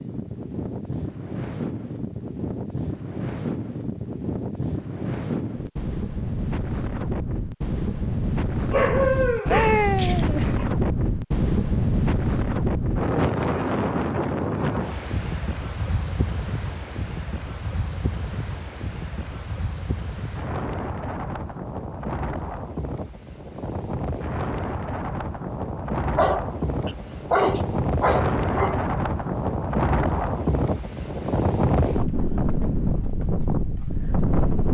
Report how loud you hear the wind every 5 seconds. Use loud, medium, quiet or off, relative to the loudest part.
medium, loud, loud, medium, medium, loud, loud.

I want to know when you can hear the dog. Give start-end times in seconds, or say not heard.
8.7-10.7, 26.1-28.9.